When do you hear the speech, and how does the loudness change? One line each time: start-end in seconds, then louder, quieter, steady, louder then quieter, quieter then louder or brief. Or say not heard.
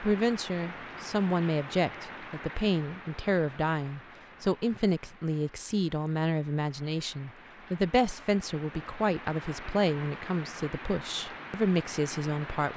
0.0-12.7 steady.